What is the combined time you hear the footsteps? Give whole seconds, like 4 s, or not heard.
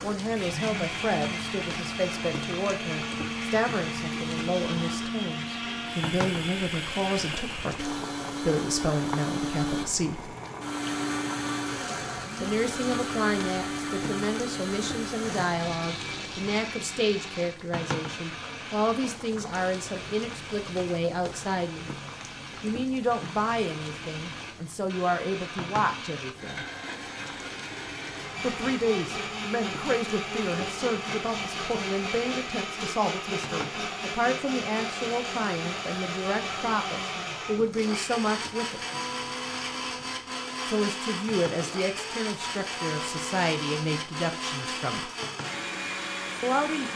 not heard.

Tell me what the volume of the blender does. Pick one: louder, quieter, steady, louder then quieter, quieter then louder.
quieter then louder.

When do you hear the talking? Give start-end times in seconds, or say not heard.
0.0-10.3, 12.4-21.9, 22.6-26.6, 28.4-38.8, 40.6-45.1, 46.4-46.9.